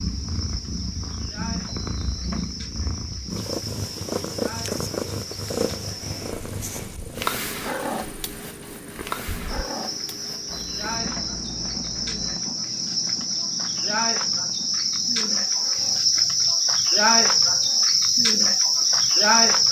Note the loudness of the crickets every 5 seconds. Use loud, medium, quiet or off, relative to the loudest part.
quiet, quiet, medium, loud.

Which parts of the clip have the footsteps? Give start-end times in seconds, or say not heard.
not heard.